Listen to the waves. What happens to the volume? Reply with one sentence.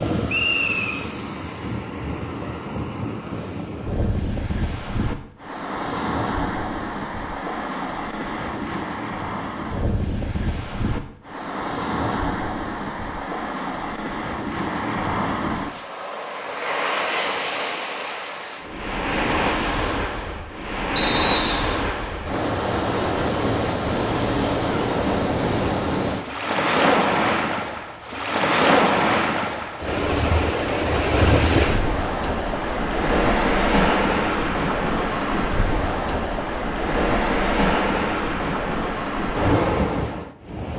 The loudness of the waves goes up.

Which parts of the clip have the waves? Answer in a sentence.
The waves can be heard from 0.0 to 40.7 s.